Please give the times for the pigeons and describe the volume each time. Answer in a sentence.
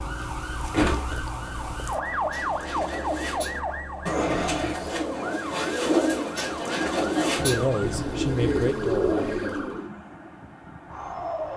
The pigeons can be heard from 1.9 to 9.8 s, getting louder.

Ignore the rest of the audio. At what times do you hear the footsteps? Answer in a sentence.
You can't hear the footsteps here.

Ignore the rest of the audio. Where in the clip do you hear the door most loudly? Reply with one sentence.
The loudest moment of the door is at 1 second.